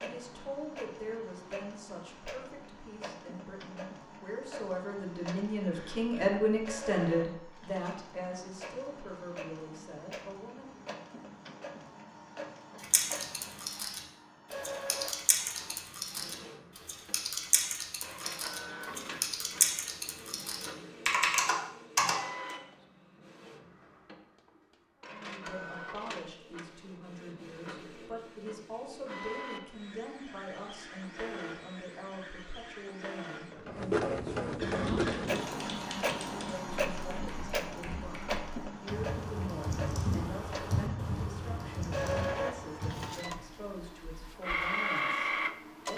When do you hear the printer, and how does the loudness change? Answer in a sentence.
The printer can be heard from 0.0 to 45.9 s, getting louder.